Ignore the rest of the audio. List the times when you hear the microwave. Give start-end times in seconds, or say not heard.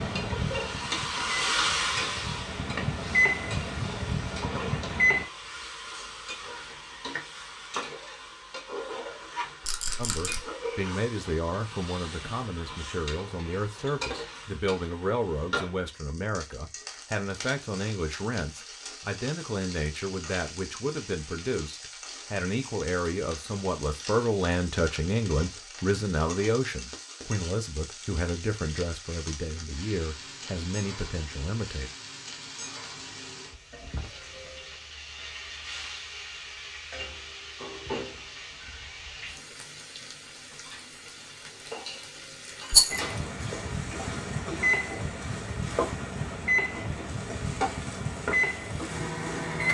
0.0-5.2, 42.9-49.6.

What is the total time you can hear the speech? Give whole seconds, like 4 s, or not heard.
22 s.